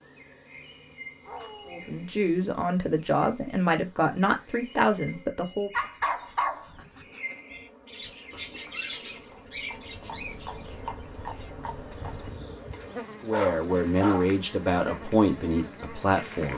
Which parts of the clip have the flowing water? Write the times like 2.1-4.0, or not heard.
not heard.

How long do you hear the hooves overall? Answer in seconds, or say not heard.
5 s.